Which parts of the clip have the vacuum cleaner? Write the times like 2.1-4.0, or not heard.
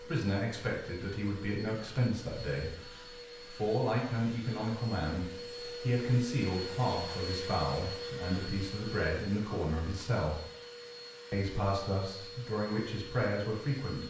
0.0-14.0.